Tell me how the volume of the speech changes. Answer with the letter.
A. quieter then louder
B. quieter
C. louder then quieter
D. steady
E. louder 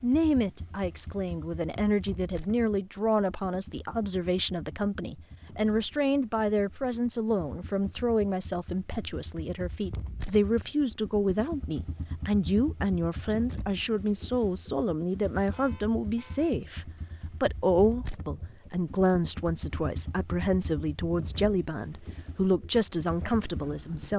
D.